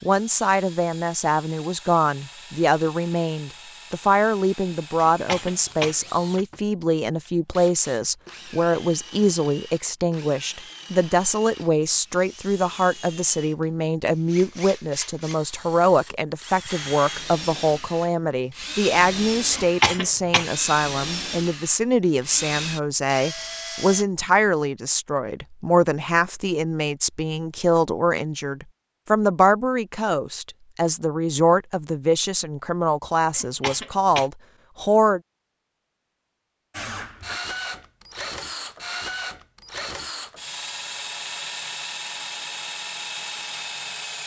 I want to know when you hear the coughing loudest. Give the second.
20 s.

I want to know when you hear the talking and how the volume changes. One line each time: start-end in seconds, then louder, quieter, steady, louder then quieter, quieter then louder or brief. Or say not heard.
0.0-35.2 steady.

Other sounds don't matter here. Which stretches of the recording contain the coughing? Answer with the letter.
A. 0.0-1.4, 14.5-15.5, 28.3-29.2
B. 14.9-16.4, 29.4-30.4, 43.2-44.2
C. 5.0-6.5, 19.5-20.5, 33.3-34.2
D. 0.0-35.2
C.